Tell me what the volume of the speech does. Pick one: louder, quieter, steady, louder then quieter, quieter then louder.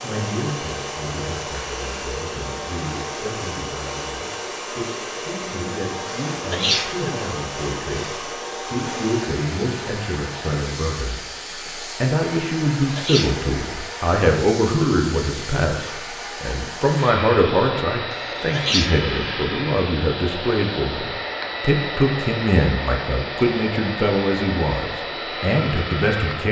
louder.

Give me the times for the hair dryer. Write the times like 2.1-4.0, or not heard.
0.0-26.4.